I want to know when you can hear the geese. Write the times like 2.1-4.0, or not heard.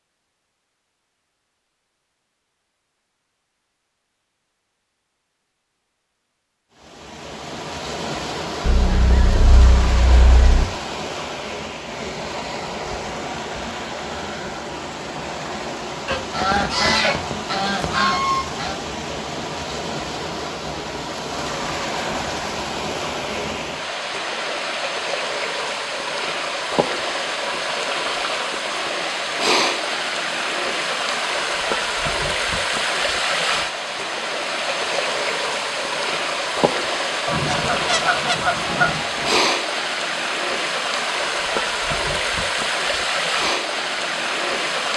8.6-10.7, 16.1-18.8, 37.2-39.4.